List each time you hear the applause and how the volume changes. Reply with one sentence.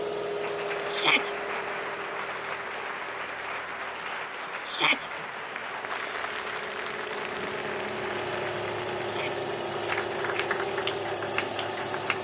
The applause can be heard from 0.2 to 12.1 s, at a steady volume.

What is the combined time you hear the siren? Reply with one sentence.
The siren can't be heard in this clip.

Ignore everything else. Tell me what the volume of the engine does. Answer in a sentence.
The volume of the engine goes down, then up.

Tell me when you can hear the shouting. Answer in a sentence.
The shouting can be heard from 0.9 to 1.4 s, from 4.7 to 5.1 s and from 9.0 to 9.4 s.